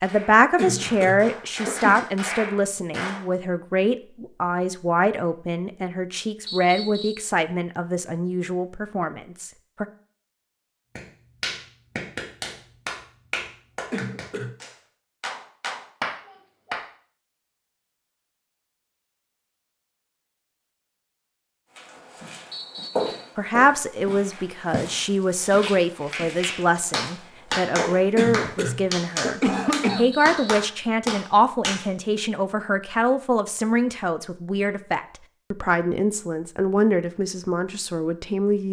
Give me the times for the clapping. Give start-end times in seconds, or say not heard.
0.0-3.2, 10.9-16.9, 26.0-31.9.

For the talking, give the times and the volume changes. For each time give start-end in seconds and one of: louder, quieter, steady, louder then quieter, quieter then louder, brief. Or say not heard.
0.0-9.8 quieter
23.4-38.6 steady.